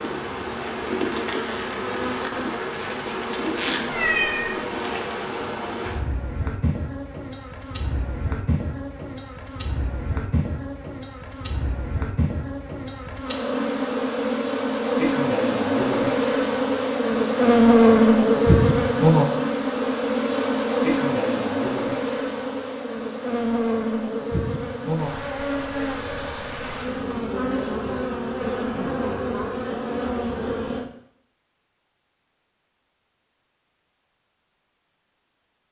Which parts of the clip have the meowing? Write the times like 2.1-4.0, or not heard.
3.9-4.5.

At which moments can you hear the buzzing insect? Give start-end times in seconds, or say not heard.
0.0-30.9.